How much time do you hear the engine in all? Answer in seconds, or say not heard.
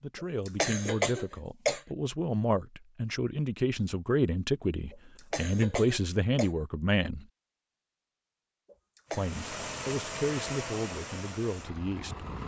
3 s.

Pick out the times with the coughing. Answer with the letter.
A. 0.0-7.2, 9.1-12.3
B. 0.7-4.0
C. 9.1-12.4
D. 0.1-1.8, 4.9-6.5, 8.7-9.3
D.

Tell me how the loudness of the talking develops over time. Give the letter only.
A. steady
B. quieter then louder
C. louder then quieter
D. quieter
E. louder
C.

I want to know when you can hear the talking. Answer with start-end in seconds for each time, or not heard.
0.0-7.2, 9.1-12.3.